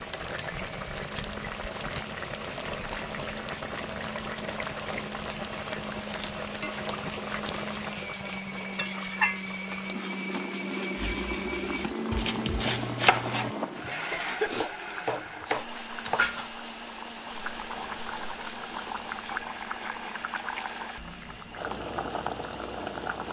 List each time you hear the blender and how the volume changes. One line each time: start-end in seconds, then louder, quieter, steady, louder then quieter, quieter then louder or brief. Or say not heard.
0.2-23.2 louder then quieter.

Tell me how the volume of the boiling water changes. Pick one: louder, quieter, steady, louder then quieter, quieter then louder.
steady.